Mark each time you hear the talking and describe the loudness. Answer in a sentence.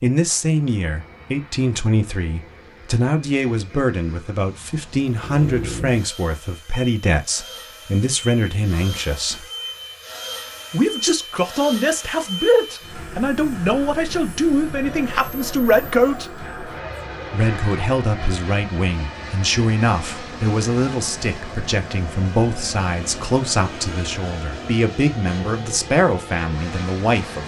You can hear the talking from 0.0 to 9.4 s, at a steady volume; from 10.7 to 16.3 s, at a steady volume; and from 17.3 to 27.4 s, at a steady volume.